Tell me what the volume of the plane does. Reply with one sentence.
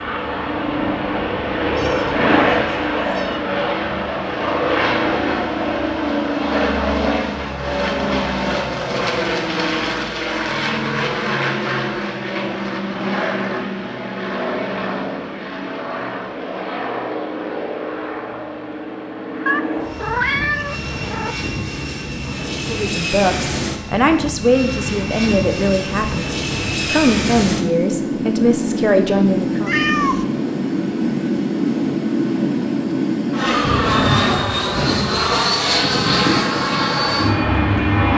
The loudness of the plane goes down, then up.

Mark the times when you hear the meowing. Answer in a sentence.
You can hear the meowing from 1.7 to 3.4 s, from 19.4 to 21.4 s and from 29.6 to 30.2 s.